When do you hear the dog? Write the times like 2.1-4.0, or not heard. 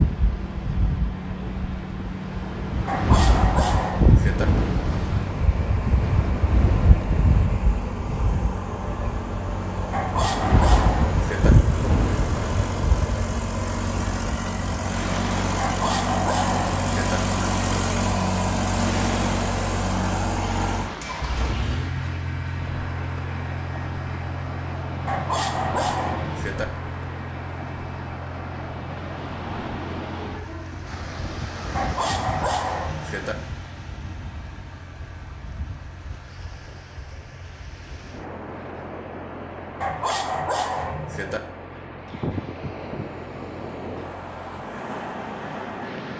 2.9-4.5, 9.9-11.5, 15.6-17.2, 25.1-26.6, 31.8-33.4, 39.8-41.4.